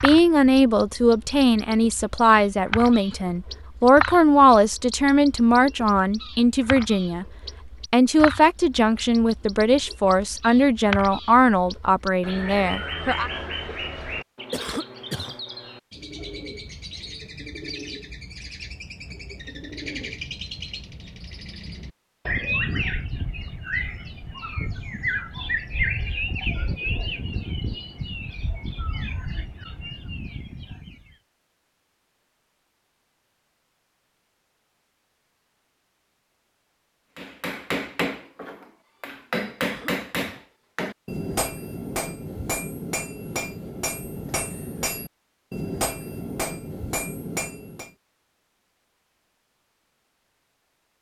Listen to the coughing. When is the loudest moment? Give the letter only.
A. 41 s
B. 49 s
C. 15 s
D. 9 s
C.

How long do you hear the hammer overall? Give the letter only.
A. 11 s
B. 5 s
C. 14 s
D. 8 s
A.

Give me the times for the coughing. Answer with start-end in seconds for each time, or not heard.
14.5-15.3, 39.6-40.5.